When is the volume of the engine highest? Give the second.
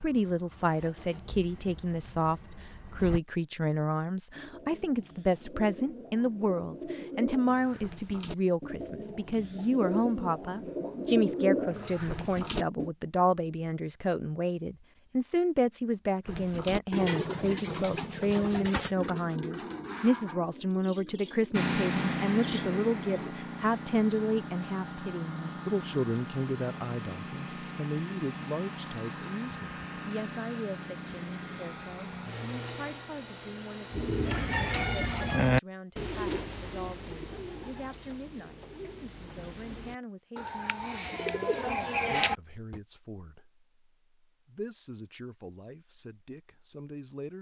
22 s.